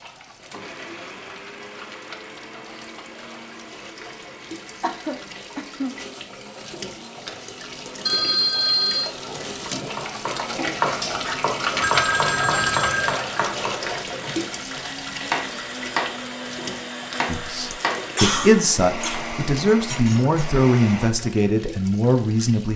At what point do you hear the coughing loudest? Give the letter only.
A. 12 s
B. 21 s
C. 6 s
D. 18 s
D.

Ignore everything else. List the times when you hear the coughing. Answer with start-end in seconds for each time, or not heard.
4.8-6.0, 10.6-11.4, 17.7-20.4.